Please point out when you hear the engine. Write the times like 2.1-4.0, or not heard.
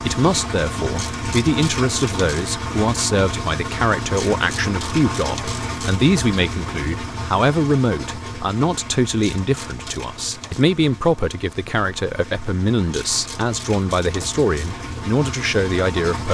0.0-16.3.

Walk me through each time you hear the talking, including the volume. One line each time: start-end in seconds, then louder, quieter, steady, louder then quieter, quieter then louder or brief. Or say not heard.
0.0-16.3 steady.